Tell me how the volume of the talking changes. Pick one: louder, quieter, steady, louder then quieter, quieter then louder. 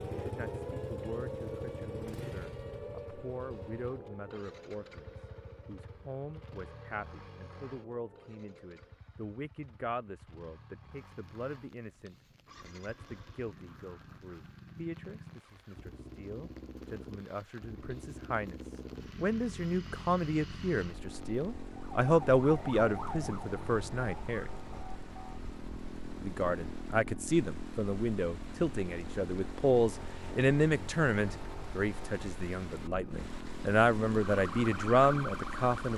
louder.